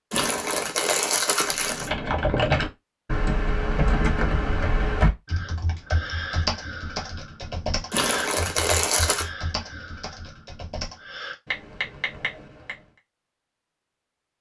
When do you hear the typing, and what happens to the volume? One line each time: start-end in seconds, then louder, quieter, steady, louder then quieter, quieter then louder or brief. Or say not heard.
1.4-12.8 quieter.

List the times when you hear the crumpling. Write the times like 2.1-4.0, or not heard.
0.1-1.9, 7.9-9.3.